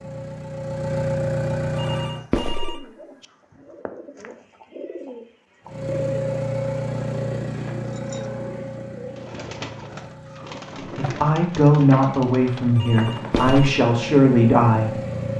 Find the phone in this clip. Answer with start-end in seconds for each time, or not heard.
1.8-3.2, 12.8-13.7.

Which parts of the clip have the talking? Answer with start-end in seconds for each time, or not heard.
10.8-15.0.